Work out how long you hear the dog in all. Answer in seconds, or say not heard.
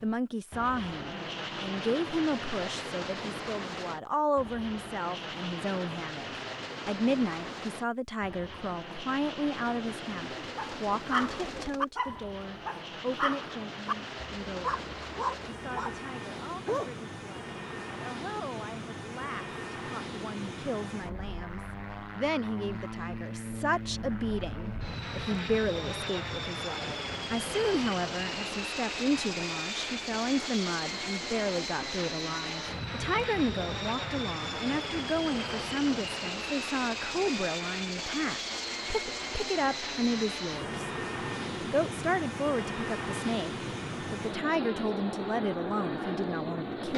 6 s.